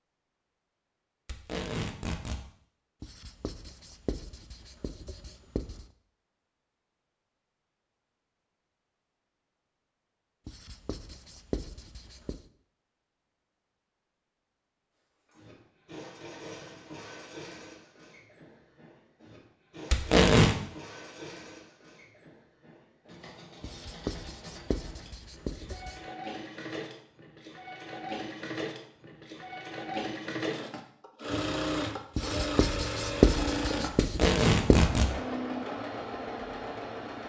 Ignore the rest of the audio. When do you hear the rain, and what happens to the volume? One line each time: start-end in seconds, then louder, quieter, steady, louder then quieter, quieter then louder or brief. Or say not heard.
not heard.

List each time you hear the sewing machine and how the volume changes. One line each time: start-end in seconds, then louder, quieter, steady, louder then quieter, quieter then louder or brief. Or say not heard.
15.2-37.2 louder.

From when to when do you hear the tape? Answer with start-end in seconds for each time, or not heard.
1.2-2.4, 19.9-20.6, 34.0-35.1.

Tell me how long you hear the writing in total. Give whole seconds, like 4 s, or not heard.
10 s.